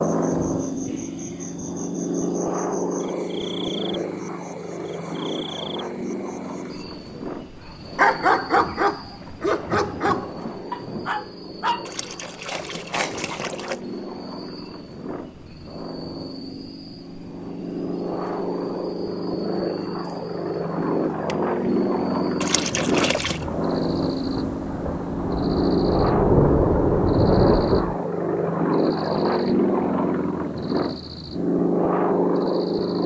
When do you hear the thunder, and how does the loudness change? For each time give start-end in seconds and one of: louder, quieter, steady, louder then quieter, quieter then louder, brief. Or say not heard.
8.6-11.1 brief
23.2-28.0 louder.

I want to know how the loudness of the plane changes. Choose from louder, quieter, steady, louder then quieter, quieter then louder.
quieter then louder.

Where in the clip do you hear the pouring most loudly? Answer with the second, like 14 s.
23 s.